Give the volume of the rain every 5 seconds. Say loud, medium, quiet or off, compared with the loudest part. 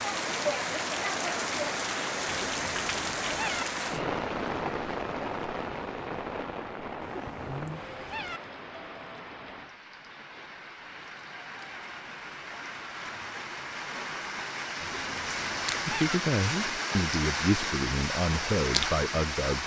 loud, medium, medium, loud.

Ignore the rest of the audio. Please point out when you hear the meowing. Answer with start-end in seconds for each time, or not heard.
2.2-3.6, 7.0-8.4, 14.8-16.1.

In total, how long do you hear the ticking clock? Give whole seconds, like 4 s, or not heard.
not heard.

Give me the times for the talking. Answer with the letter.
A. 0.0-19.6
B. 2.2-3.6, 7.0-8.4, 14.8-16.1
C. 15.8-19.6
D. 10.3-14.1
C.